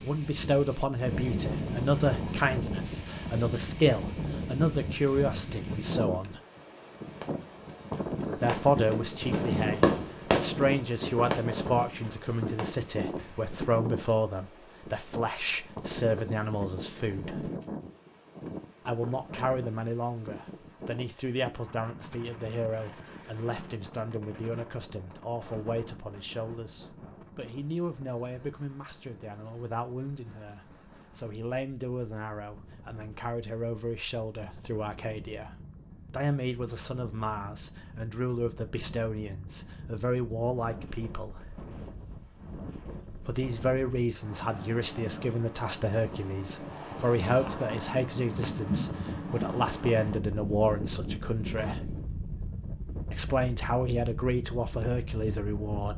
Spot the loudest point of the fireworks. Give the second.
10 s.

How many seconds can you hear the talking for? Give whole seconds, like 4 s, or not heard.
50 s.